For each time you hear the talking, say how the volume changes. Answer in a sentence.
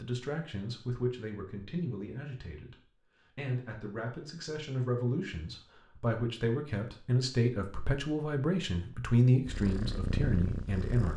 You can hear the talking from 0.0 to 11.1 s, getting louder.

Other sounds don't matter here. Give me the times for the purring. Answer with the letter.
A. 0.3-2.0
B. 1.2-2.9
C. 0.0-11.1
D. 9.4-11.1
D.